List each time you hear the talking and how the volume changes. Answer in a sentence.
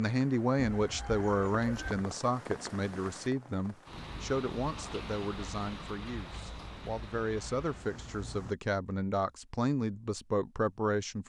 The talking can be heard from 0.0 to 11.2 s, getting quieter then louder.